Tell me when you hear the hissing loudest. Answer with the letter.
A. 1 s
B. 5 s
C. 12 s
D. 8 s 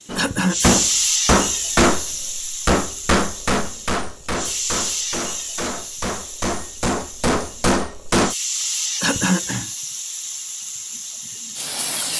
A.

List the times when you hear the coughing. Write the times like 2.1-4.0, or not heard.
0.1-0.8, 9.0-9.7.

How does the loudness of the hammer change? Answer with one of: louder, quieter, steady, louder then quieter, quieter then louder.
quieter then louder.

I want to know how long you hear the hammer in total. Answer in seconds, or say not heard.
8 s.